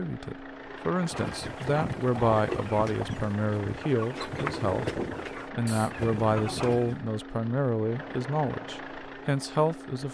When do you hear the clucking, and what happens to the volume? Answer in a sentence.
The clucking can be heard from 1.0 to 7.0 s, at a steady volume.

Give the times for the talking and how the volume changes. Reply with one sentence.
You can hear the talking from 0.0 to 10.0 s, at a steady volume.